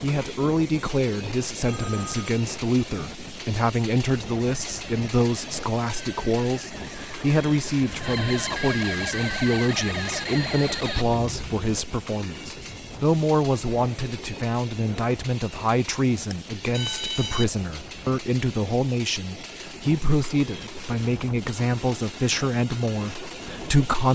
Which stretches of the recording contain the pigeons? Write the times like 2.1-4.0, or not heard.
not heard.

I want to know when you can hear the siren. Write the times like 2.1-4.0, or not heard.
4.4-11.1.